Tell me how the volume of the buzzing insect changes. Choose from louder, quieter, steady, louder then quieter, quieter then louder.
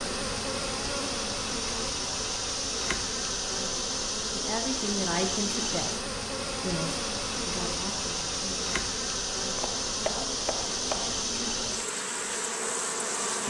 steady.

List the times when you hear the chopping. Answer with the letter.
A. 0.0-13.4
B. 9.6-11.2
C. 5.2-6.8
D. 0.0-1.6
B.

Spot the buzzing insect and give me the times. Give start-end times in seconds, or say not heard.
0.0-13.4.